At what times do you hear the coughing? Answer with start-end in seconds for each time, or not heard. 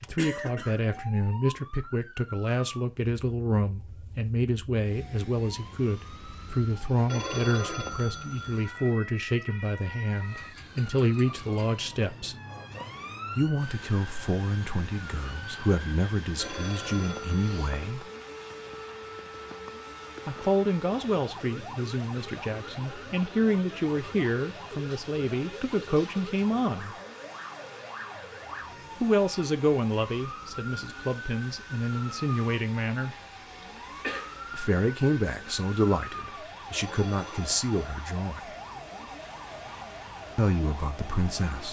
0.1-1.2, 33.6-34.4.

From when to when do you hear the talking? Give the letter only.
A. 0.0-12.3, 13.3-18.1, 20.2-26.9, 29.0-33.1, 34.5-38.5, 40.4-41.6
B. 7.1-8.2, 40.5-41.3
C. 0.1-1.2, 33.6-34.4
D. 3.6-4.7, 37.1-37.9
A.